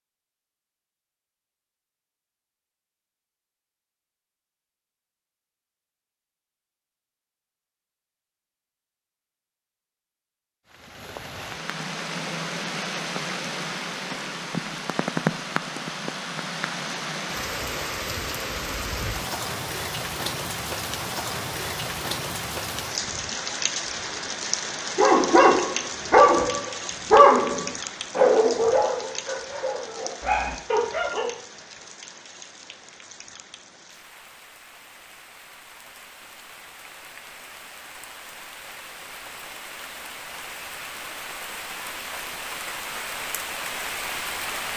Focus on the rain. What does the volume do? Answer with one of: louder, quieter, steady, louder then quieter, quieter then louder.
quieter then louder.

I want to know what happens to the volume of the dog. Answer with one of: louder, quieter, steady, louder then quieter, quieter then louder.
quieter.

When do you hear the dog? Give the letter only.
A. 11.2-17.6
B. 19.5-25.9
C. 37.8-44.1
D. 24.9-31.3
D.